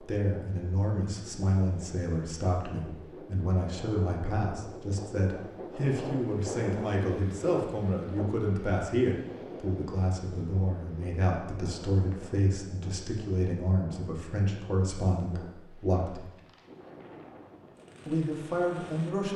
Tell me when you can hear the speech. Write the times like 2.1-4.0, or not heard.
0.0-16.2, 18.1-19.3.